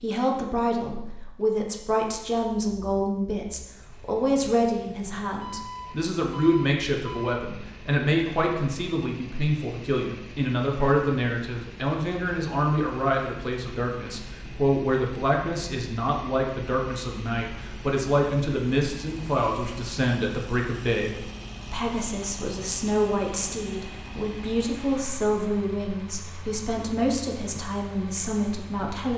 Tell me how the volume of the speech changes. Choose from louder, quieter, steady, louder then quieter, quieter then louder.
steady.